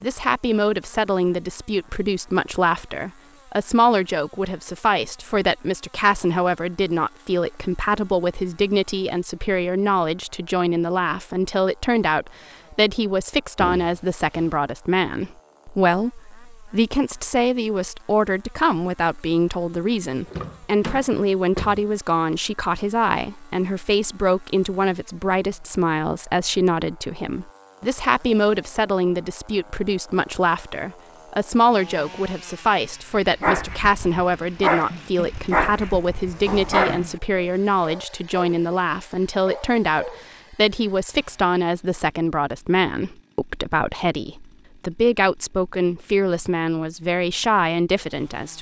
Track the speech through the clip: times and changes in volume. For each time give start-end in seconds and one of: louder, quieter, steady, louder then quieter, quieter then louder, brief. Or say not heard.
0.0-48.5 steady.